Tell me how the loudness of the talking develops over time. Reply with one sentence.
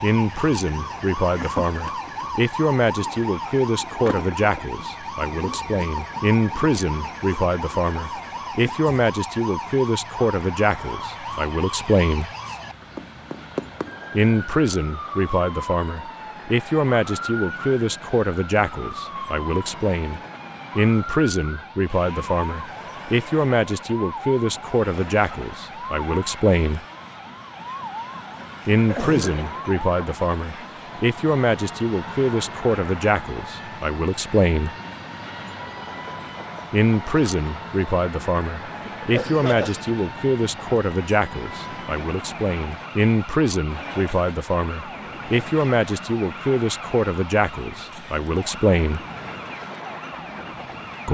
The volume of the talking stays about the same.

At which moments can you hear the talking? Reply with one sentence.
The talking can be heard from 0.0 to 12.3 s, from 14.1 to 26.9 s, from 28.6 to 34.8 s and from 36.7 to 49.0 s.